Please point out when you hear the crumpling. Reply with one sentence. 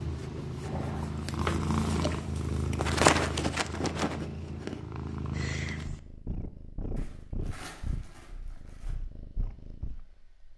You can hear the crumpling from 0.6 to 1.1 s and from 7.0 to 8.9 s.